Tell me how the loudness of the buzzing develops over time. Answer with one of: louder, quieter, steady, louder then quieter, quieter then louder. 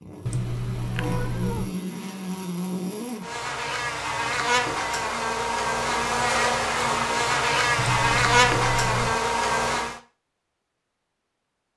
louder.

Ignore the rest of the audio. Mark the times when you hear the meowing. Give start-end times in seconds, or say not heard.
0.2-1.8, 7.8-9.2.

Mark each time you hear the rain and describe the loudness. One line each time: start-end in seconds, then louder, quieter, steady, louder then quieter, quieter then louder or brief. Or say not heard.
not heard.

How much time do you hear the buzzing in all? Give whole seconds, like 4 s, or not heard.
10 s.